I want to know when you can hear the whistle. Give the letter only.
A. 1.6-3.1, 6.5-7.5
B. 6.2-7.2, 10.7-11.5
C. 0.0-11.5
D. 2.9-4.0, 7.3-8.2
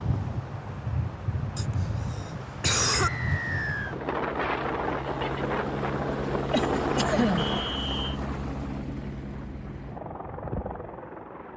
D.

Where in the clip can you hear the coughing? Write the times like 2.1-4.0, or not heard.
1.6-3.1, 6.5-7.5.